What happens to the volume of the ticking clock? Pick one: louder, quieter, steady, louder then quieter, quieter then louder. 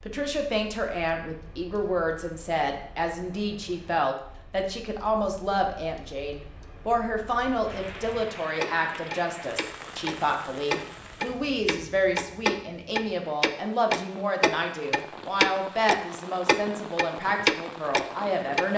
louder.